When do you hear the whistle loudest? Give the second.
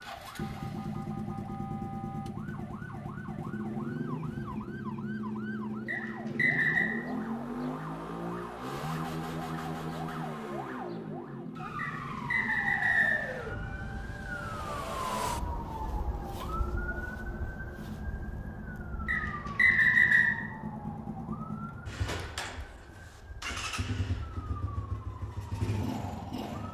20 s.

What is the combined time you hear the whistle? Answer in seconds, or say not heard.
4 s.